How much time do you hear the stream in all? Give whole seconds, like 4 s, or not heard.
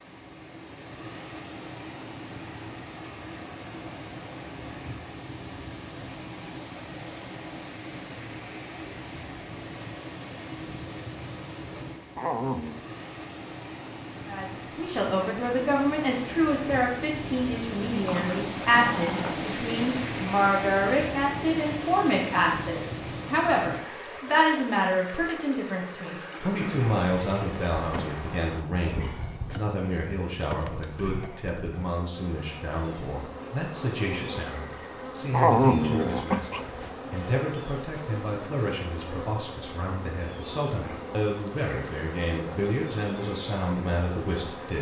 29 s.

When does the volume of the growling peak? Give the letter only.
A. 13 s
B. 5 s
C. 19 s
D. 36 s
D.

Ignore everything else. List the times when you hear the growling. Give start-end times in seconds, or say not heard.
12.2-12.8, 18.1-19.4, 35.3-36.9.